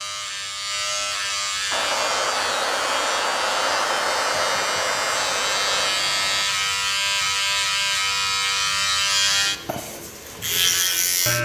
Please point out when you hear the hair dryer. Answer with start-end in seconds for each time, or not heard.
1.7-6.5.